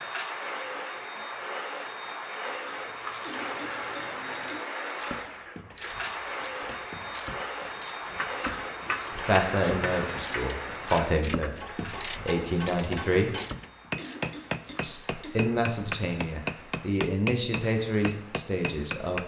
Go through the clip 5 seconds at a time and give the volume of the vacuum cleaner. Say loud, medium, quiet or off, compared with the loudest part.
loud, loud, medium, quiet.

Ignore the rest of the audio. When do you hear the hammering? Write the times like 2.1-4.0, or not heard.
8.1-19.2.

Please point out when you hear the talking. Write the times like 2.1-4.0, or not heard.
9.2-13.3, 14.8-19.2.